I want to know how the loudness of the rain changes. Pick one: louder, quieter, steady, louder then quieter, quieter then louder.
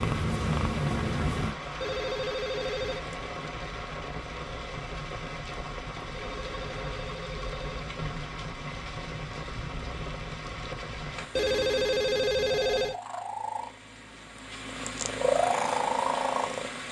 steady.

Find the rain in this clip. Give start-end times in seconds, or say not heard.
0.0-11.2.